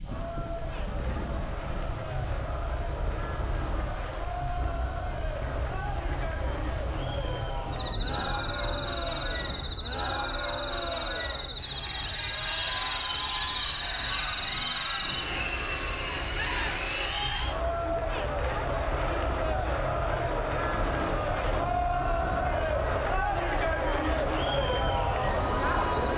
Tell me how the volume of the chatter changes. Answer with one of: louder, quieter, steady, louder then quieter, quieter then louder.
louder.